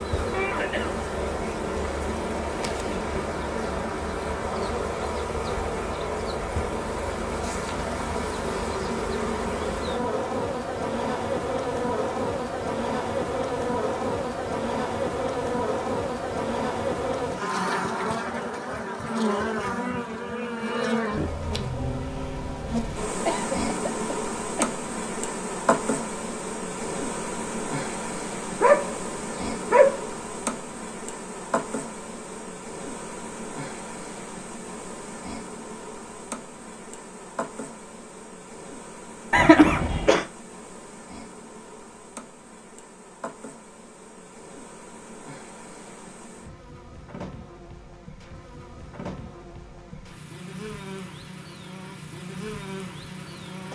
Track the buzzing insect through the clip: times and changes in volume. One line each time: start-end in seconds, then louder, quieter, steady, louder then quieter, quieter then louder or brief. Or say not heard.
0.0-53.6 quieter.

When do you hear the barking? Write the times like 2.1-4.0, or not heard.
28.6-30.2.